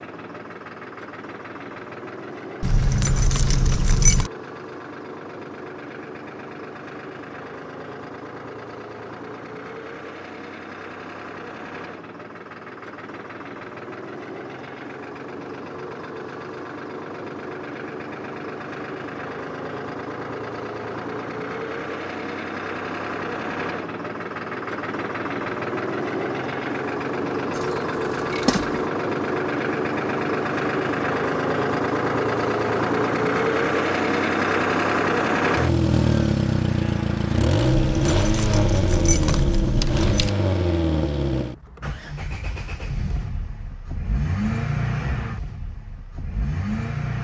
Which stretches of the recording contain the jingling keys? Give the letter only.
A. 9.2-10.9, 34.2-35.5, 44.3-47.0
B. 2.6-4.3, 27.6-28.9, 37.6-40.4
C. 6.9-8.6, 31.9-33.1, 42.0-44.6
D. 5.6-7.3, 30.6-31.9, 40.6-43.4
B.